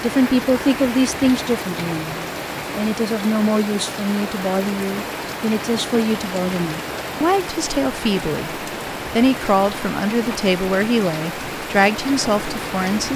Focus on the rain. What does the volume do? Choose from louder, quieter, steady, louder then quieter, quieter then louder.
steady.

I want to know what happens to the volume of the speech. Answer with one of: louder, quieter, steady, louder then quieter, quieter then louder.
steady.